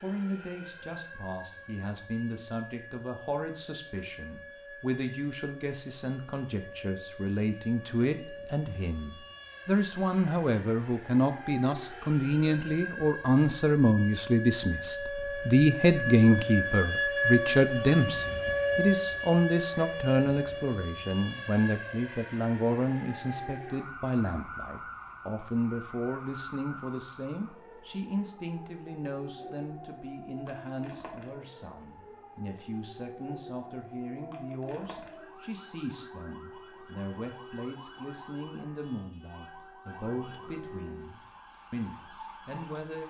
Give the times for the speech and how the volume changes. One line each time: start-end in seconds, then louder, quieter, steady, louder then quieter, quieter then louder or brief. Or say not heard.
0.0-43.0 louder then quieter.